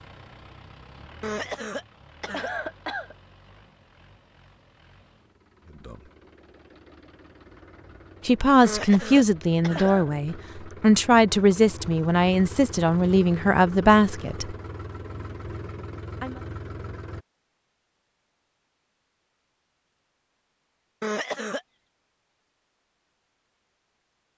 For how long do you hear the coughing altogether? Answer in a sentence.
The coughing can be heard for 4 seconds in total.